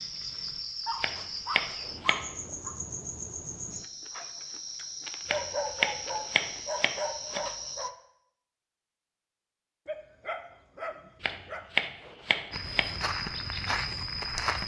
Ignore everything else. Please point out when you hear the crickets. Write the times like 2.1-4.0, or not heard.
0.0-7.9.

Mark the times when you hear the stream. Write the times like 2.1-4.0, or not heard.
not heard.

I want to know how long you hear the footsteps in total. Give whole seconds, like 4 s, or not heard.
2 s.